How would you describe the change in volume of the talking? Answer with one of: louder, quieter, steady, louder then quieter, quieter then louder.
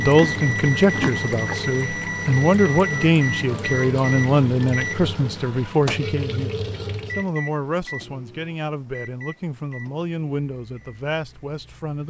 quieter.